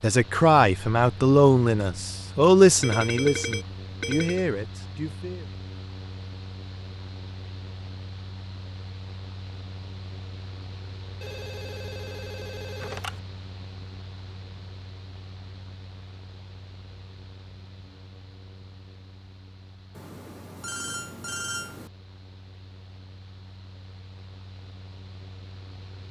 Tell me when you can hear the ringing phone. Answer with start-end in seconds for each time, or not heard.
2.8-4.5, 11.2-13.2, 19.9-21.9.